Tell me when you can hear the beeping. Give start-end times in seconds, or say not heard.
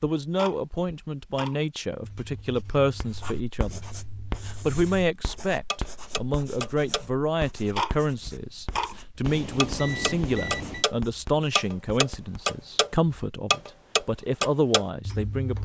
9.2-10.8.